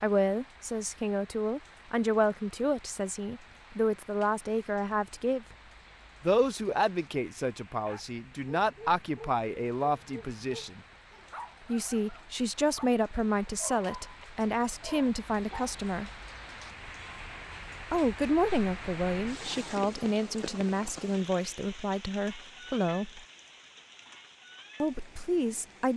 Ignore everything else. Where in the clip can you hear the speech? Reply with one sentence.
The speech can be heard from 0.0 to 5.5 s, from 6.2 to 10.8 s, from 11.7 to 16.1 s, from 17.8 to 23.2 s and from 24.8 to 25.9 s.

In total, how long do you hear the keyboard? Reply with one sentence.
You can't hear the keyboard here.